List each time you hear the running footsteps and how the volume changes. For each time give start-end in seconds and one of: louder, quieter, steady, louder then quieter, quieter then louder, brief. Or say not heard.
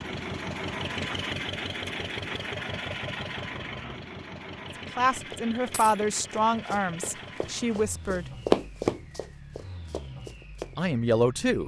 5.2-10.9 louder then quieter.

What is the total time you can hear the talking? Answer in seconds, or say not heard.
4 s.